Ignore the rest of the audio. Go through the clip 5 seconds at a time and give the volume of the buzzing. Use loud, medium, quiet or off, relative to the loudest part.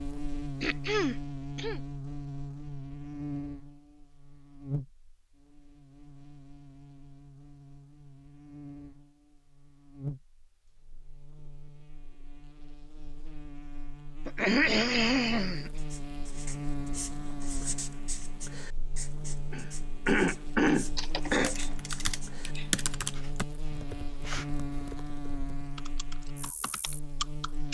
loud, quiet, medium, loud, loud, loud.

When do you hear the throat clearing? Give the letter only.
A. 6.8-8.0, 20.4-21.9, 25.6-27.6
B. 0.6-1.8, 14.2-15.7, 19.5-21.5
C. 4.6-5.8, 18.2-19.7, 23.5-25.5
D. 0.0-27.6
B.